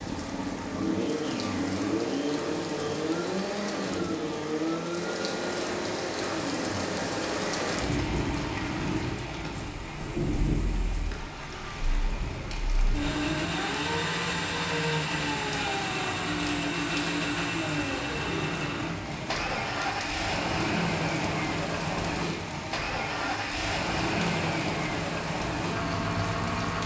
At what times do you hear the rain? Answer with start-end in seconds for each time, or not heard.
0.0-26.8.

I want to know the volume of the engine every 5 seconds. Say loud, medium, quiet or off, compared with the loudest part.
loud, medium, loud, loud, loud, loud.